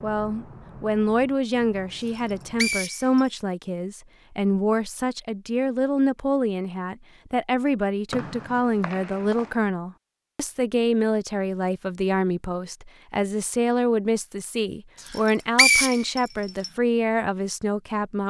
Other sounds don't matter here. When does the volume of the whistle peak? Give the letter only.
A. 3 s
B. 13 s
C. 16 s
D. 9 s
C.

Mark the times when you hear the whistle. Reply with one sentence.
The whistle can be heard from 2.0 to 3.2 s, from 8.1 to 9.6 s and from 15.1 to 16.7 s.